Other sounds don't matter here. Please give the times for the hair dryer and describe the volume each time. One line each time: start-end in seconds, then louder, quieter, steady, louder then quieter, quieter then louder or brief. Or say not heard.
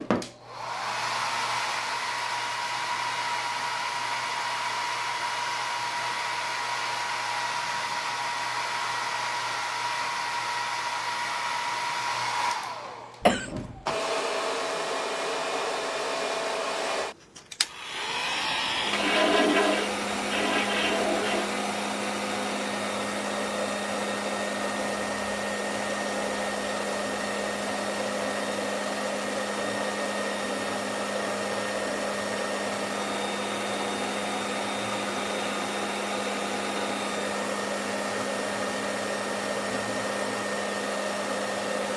0.0-41.9 steady.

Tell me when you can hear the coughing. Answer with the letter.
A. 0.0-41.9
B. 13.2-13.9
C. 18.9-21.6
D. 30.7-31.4
B.